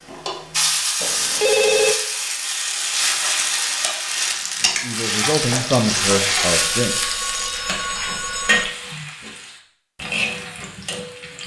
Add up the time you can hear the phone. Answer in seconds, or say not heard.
3 s.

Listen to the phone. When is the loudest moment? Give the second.
2 s.